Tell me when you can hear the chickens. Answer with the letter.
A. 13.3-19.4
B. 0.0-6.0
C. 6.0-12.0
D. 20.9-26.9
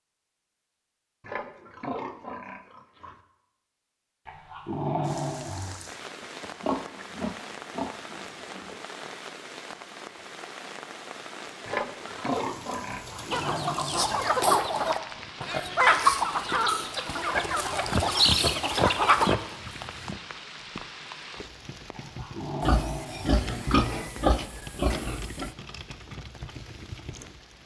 A.